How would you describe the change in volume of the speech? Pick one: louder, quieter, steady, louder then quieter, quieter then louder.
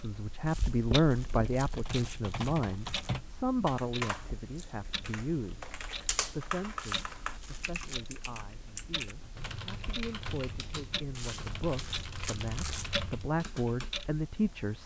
quieter then louder.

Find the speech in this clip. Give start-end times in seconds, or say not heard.
0.0-5.7, 6.3-14.8.